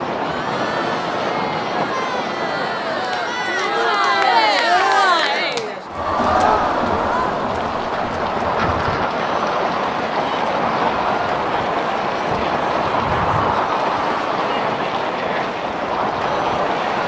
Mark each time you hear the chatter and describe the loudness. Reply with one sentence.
You can hear the chatter from 0.1 to 17.0 s, getting louder then quieter.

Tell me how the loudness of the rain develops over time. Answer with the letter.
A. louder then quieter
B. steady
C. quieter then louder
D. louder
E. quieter
C.